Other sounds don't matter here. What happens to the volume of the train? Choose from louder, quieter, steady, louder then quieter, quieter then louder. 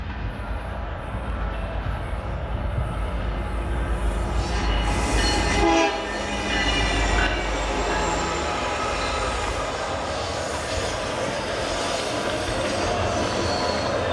louder then quieter.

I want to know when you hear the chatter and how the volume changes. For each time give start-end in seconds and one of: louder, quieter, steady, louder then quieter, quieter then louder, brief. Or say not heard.
0.2-14.0 louder.